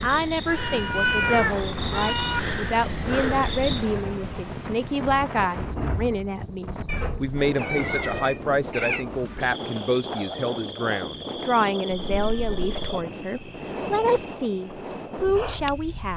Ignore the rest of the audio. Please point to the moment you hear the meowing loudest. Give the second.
1 s.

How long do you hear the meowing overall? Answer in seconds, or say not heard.
5 s.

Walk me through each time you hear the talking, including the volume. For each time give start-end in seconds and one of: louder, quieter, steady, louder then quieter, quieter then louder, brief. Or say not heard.
0.0-16.1 steady.